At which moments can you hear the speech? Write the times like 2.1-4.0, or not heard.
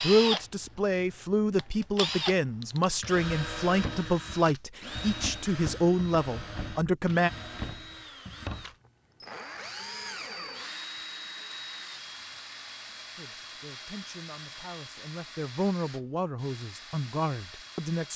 0.0-7.3, 13.2-18.1.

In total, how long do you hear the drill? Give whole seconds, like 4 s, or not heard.
18 s.